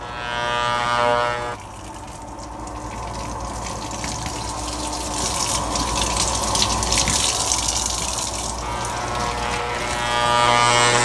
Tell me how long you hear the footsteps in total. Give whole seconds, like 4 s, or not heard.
not heard.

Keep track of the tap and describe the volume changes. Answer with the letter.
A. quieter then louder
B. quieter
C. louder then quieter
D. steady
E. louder
C.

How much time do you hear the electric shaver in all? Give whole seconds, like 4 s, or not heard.
4 s.